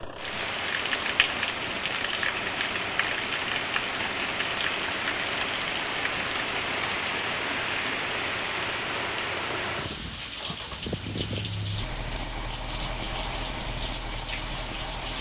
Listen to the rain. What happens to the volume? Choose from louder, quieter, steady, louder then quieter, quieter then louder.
quieter.